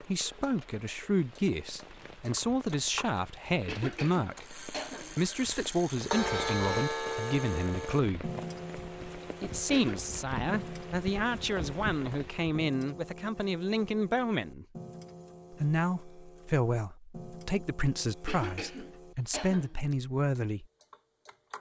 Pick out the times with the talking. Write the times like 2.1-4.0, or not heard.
0.0-8.3, 9.4-14.7, 15.5-20.6.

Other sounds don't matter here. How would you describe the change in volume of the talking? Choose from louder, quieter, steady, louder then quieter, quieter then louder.
steady.